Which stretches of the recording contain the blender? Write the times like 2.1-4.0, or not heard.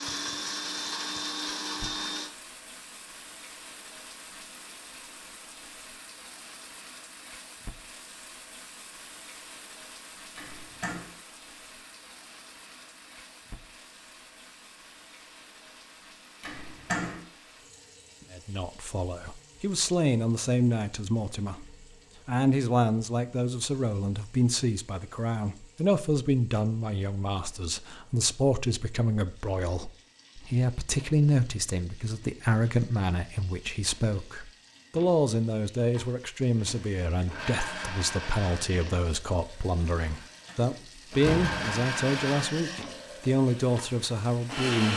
0.0-2.3, 36.6-44.9.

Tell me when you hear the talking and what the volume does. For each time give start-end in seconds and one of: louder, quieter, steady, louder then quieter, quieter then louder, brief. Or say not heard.
18.3-44.9 steady.